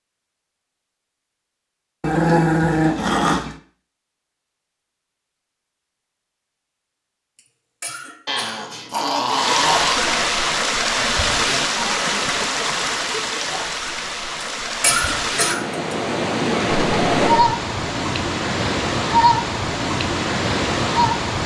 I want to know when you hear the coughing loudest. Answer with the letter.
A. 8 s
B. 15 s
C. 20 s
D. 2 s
B.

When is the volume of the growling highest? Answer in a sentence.
The volume of the growling peaks at 2 seconds.